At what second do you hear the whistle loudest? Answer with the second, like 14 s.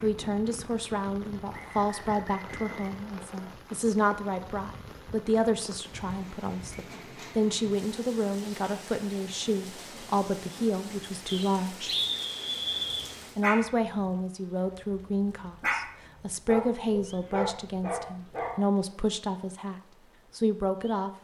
12 s.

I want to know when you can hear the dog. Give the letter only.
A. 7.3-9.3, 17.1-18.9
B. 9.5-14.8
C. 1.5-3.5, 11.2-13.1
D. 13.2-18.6
D.